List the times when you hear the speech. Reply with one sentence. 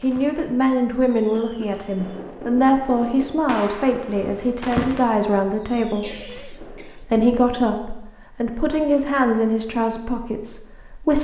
You can hear the speech from 0.0 to 11.1 s.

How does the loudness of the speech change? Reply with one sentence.
The loudness of the speech stays about the same.